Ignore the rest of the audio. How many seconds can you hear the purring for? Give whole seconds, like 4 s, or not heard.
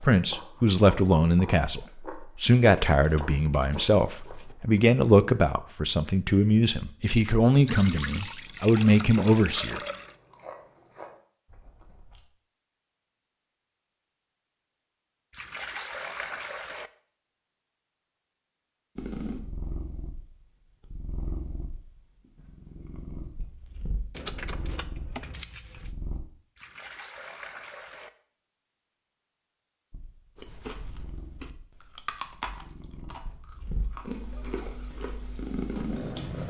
14 s.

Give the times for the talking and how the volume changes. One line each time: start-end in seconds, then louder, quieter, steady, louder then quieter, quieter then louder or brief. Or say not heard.
0.0-9.8 steady.